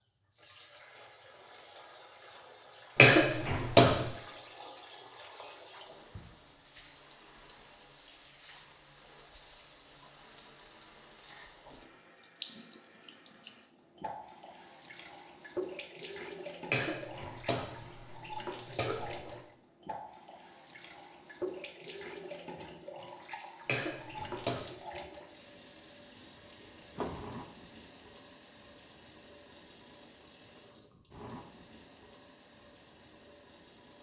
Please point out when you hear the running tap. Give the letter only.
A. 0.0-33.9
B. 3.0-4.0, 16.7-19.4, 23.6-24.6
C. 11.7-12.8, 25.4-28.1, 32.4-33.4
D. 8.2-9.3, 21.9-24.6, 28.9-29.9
A.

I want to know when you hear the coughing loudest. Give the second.
3 s.